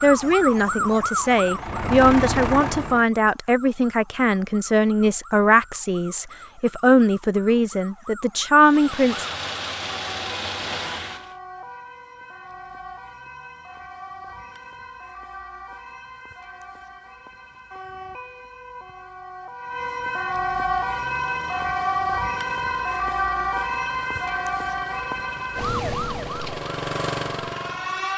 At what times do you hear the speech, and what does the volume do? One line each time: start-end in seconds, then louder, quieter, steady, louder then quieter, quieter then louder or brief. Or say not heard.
0.0-9.2 steady.